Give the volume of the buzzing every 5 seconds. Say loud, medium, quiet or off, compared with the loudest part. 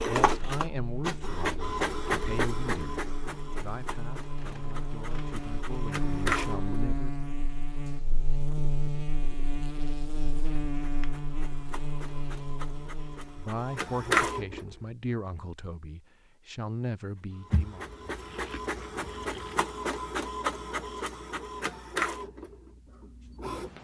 medium, loud, loud, off, off.